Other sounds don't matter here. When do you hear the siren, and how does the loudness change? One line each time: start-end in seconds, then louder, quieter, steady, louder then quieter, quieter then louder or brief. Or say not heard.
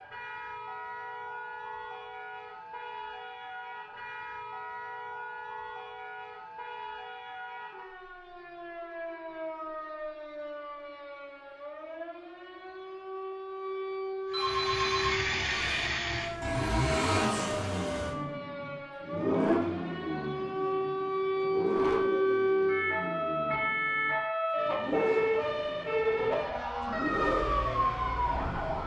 0.0-28.8 louder.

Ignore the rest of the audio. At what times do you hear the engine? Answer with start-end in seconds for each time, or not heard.
14.3-28.8.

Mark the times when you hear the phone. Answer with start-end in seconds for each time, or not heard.
14.3-15.9.